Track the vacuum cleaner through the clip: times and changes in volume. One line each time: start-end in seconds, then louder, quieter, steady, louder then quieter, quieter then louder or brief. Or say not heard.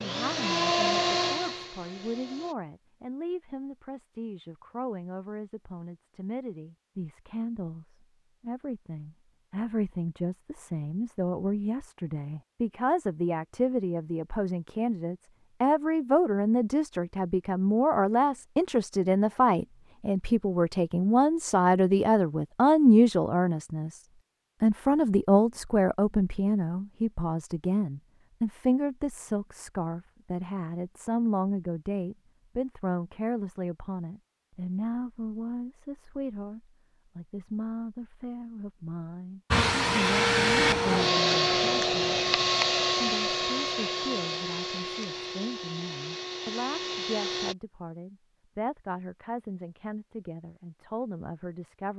0.0-2.5 brief
39.5-47.5 quieter.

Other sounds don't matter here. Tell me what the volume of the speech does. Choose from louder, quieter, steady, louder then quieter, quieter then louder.
louder then quieter.